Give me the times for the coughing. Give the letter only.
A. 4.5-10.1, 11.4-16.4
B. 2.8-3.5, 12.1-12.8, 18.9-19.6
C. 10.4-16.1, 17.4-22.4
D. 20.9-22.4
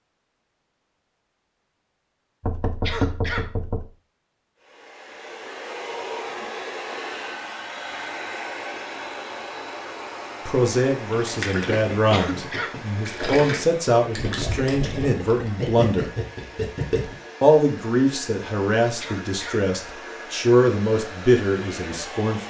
B.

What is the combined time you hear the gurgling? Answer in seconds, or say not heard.
6 s.